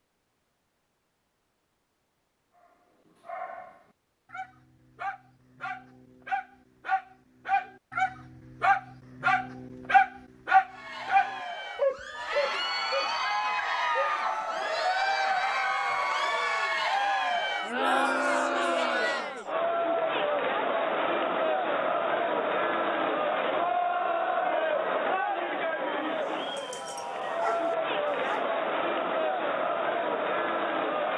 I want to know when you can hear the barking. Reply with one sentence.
The barking can be heard from 2.5 to 14.1 s and from 26.2 to 28.4 s.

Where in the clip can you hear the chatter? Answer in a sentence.
You can hear the chatter from 10.7 to 31.1 s.